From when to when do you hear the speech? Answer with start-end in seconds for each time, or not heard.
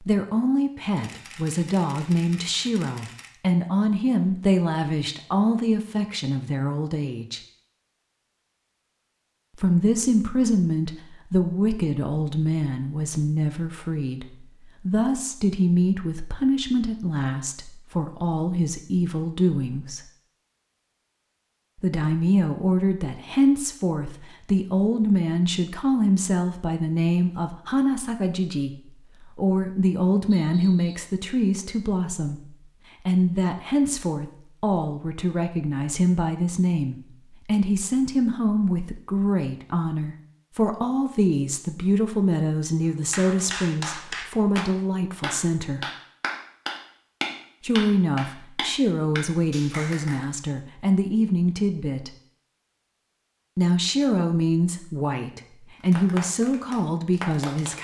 0.0-7.4, 9.6-20.0, 21.8-45.8, 47.6-52.1, 53.5-57.7.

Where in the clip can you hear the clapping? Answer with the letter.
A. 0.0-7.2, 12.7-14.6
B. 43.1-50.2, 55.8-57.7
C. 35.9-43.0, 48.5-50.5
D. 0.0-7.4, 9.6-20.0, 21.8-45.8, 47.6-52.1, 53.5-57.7
B.